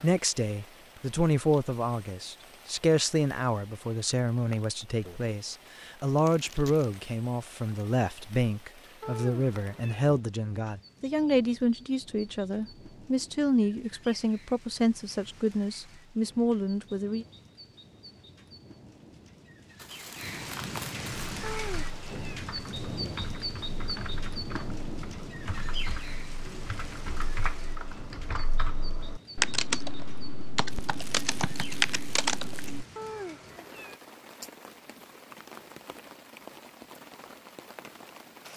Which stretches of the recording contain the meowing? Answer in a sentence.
You can hear the meowing from 9.0 to 10.1 s, from 21.4 to 22.4 s and from 33.0 to 34.0 s.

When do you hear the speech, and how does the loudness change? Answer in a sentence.
The speech can be heard from 0.0 to 17.2 s, at a steady volume.